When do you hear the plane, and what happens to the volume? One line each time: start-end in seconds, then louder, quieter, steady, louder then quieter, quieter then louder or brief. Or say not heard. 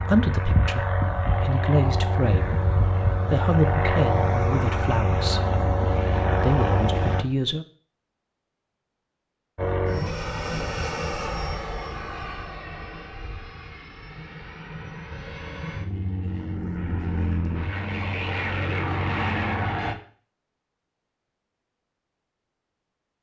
0.0-7.2 steady
9.6-19.9 quieter then louder.